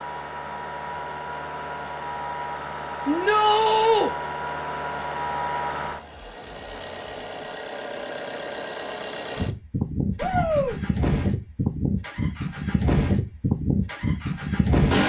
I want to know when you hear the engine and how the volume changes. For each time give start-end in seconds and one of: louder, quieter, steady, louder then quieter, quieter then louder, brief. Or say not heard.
0.0-15.0 louder.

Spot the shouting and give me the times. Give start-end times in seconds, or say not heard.
3.0-4.1, 10.2-10.8.